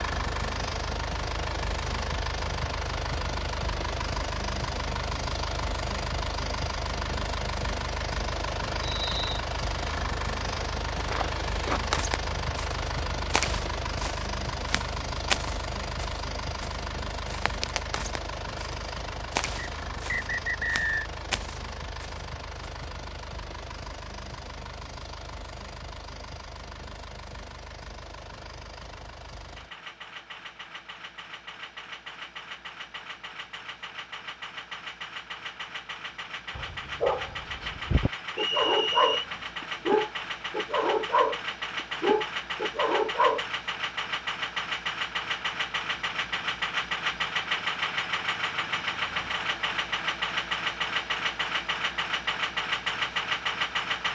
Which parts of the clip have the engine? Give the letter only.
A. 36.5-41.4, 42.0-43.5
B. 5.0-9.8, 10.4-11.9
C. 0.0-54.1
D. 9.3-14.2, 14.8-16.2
C.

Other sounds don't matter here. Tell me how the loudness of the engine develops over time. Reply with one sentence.
The volume of the engine goes down, then up.